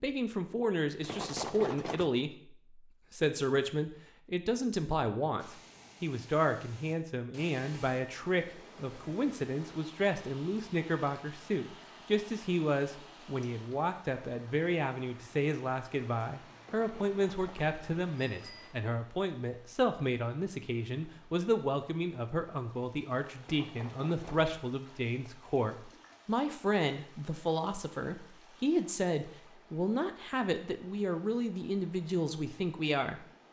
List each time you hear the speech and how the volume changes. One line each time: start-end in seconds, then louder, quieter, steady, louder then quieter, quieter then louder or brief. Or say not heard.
0.0-33.2 steady.